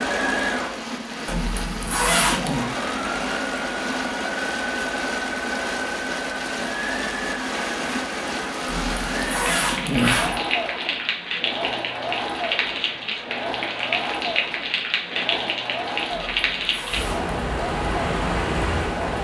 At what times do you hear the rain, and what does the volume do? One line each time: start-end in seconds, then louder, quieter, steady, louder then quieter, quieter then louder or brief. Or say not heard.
0.0-19.1 louder.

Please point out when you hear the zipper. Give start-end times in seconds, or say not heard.
1.2-2.6, 8.7-10.4, 16.1-17.2.